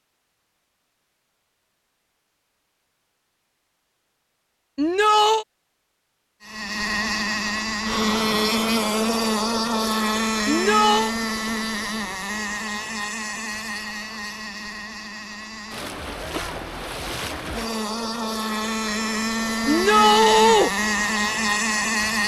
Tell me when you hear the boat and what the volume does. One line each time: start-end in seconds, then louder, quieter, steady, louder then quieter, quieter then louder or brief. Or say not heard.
6.4-22.2 quieter then louder.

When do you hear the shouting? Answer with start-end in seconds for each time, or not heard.
4.8-5.5, 10.4-11.2, 19.6-20.7.